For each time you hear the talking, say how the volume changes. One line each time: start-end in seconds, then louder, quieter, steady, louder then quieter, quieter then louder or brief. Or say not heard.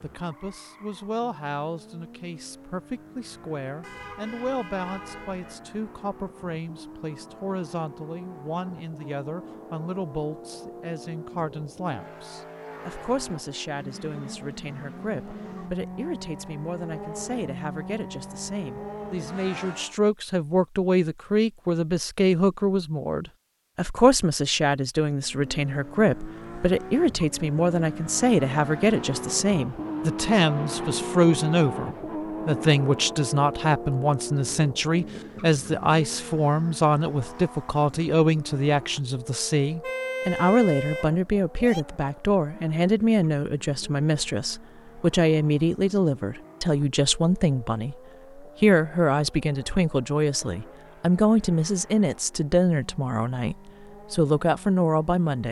0.0-55.4 louder.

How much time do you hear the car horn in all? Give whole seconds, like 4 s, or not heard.
4 s.